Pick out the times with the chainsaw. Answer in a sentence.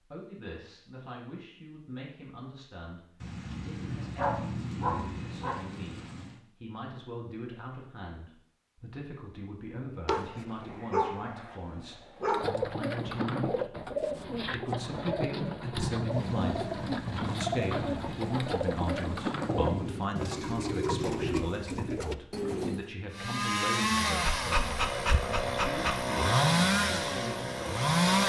The chainsaw can be heard from 23.1 to 28.2 s.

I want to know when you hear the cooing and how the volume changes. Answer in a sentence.
You can hear the cooing from 12.2 to 22.9 s, at a steady volume.